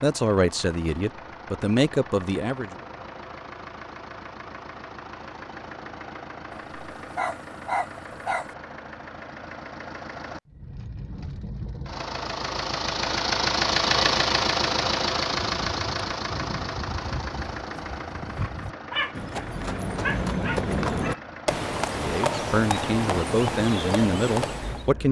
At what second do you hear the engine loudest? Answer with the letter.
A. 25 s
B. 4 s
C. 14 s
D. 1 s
C.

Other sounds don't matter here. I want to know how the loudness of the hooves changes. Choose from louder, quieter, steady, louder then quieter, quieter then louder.
louder.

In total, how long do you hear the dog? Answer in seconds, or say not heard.
4 s.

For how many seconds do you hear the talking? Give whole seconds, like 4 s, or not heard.
6 s.